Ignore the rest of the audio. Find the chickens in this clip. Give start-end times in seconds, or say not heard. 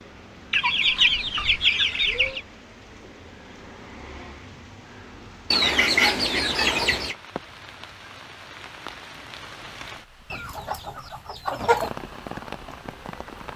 0.5-2.4, 5.5-7.2, 10.3-11.9.